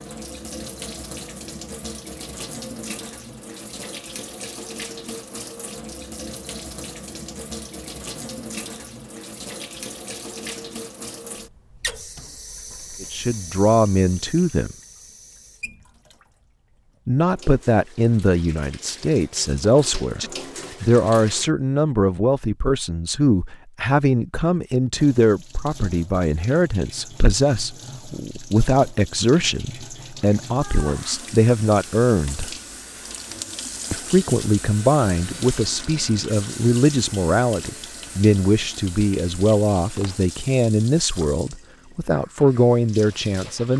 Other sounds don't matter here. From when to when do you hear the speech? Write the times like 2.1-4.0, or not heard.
13.0-14.8, 17.1-20.2, 20.8-32.5, 33.9-43.7.